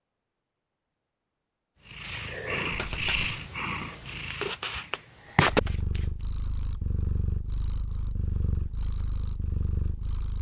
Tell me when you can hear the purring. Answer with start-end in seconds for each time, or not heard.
1.9-10.3.